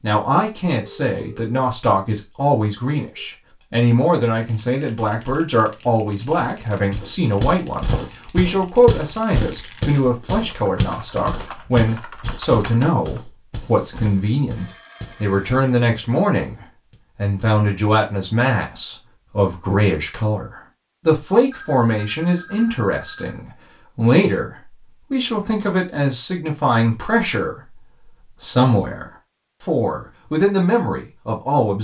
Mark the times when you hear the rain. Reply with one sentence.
The rain can't be heard in this clip.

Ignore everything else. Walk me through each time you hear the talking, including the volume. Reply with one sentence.
You can hear the talking from 0.0 to 31.7 s, at a steady volume.